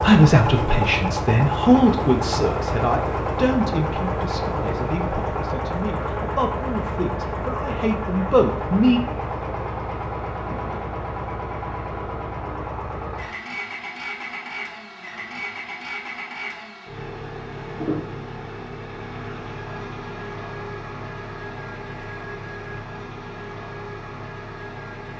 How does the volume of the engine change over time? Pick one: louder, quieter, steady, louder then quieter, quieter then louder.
quieter.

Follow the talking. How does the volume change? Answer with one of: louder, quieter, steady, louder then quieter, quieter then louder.
quieter then louder.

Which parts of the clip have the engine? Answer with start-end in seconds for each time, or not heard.
0.0-25.1.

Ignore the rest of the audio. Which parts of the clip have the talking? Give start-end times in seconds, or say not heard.
0.0-9.0.